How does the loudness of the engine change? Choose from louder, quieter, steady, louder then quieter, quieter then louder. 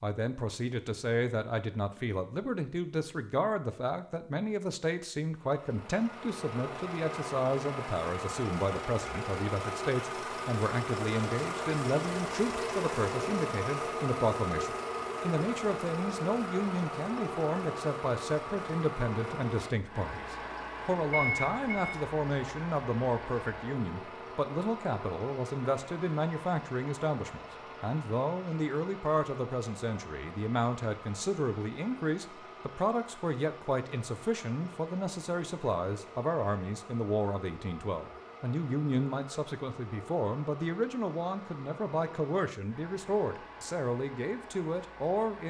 quieter.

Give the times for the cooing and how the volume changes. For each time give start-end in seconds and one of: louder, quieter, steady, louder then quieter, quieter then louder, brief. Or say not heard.
not heard.